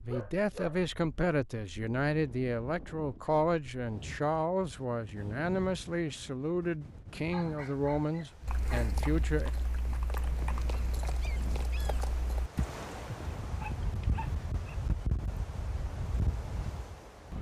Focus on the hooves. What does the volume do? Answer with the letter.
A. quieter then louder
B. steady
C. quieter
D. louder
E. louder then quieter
B.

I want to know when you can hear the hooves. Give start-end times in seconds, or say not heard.
8.4-14.2.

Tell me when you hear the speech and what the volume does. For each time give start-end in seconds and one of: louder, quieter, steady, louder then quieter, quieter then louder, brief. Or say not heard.
0.0-9.5 steady.